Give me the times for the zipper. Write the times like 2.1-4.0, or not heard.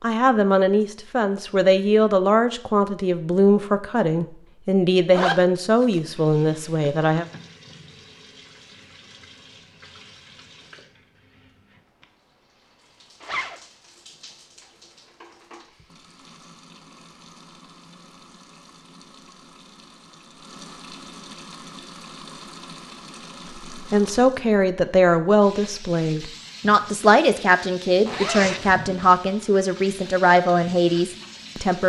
5.1-6.0, 13.2-13.6, 28.1-29.3.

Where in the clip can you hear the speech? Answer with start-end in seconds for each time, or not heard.
0.0-7.2, 23.7-31.8.